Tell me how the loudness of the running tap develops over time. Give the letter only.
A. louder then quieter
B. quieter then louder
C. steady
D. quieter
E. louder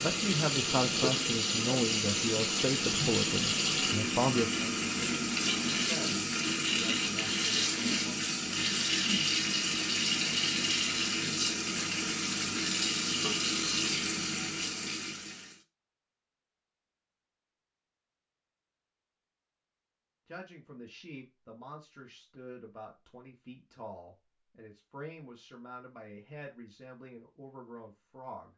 C.